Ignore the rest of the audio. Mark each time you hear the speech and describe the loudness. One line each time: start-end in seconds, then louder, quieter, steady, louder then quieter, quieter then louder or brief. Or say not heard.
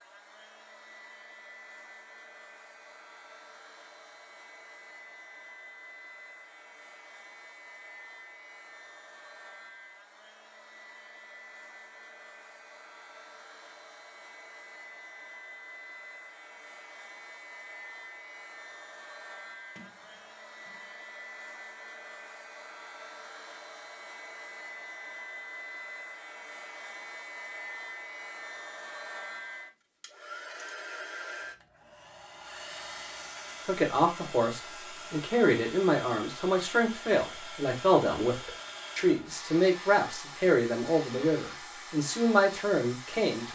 33.6-43.5 steady.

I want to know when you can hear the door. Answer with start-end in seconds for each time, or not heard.
19.8-20.9.